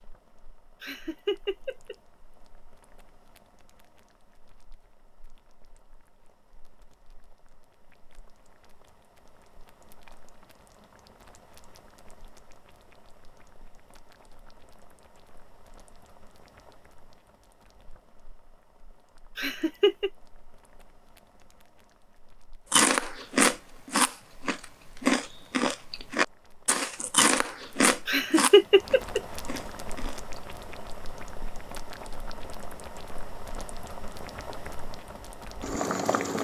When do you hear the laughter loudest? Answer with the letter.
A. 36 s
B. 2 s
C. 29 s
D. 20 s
C.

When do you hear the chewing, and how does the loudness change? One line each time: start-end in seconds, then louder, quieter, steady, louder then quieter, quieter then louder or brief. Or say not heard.
22.7-30.4 quieter.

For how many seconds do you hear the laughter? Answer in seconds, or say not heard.
3 s.